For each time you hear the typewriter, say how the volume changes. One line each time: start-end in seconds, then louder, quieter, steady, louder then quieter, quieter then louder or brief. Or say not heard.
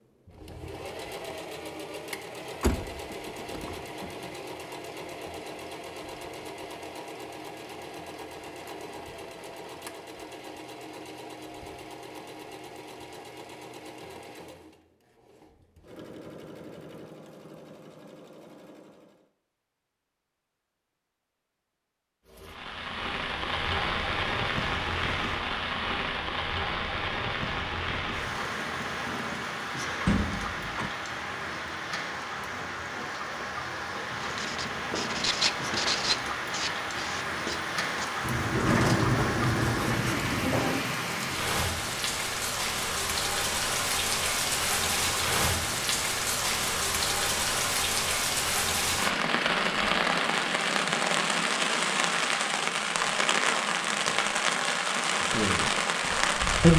not heard.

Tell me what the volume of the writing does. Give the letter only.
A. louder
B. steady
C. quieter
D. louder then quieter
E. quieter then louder
E.